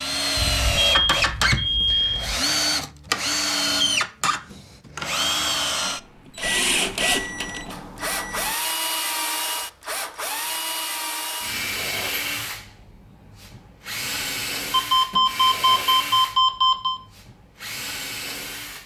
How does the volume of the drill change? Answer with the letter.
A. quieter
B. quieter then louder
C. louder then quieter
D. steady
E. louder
A.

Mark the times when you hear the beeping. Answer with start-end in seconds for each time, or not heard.
0.3-2.4, 6.4-8.6, 14.7-17.0.